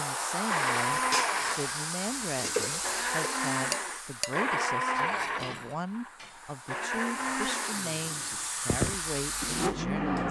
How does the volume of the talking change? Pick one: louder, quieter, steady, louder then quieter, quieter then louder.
steady.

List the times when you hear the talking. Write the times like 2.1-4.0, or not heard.
0.0-10.2.